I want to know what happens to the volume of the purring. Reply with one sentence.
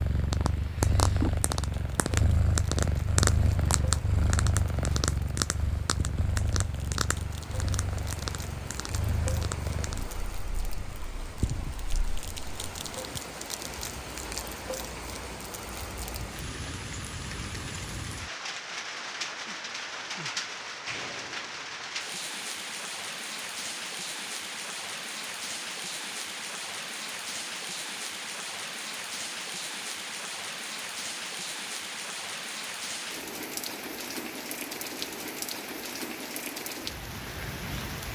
The volume of the purring goes down.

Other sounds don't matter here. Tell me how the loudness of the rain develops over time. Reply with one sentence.
The volume of the rain goes up.